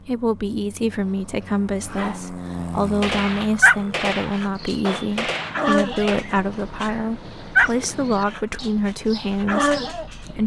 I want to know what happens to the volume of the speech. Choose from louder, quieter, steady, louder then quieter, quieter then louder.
steady.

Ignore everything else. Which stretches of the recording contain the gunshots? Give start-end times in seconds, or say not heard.
3.0-6.2.